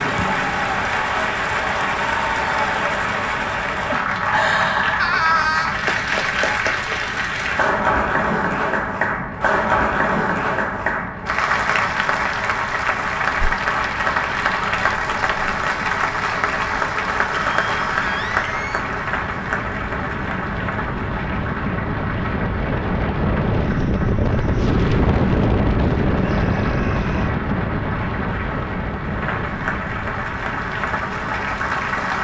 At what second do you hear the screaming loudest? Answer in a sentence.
The volume of the screaming peaks at 5 seconds.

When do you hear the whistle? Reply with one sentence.
The whistle can't be heard in this clip.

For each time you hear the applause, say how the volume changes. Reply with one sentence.
The applause can be heard from 0.0 to 32.2 s, getting quieter.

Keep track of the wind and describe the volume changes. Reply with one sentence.
The loudness of the wind goes up.